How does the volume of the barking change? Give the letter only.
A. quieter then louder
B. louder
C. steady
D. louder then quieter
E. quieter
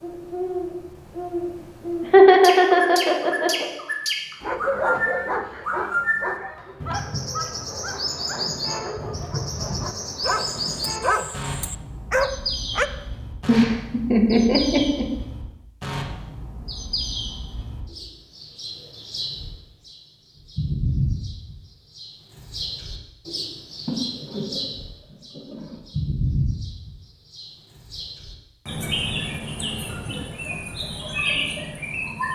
A.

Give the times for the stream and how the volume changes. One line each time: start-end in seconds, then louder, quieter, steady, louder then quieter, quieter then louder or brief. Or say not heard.
not heard.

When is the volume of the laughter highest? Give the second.
2 s.